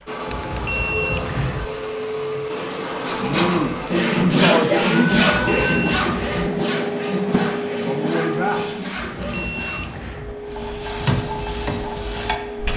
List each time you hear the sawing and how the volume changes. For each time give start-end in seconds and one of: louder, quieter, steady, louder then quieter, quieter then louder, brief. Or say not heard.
3.0-10.0 quieter.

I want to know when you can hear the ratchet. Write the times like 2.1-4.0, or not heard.
10.4-12.7.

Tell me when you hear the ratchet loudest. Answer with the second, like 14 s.
11 s.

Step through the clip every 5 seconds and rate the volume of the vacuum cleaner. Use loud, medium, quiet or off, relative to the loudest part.
loud, loud, medium.